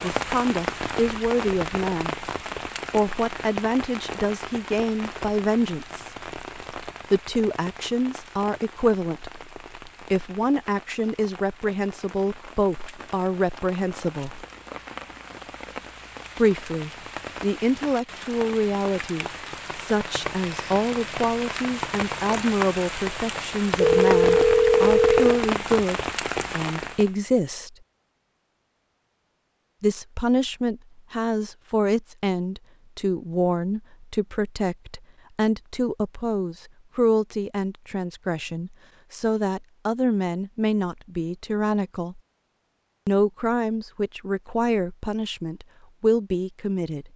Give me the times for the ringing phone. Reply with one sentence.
The ringing phone can be heard from 23.8 to 25.2 s.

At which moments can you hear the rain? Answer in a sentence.
You can hear the rain from 0.0 to 27.1 s.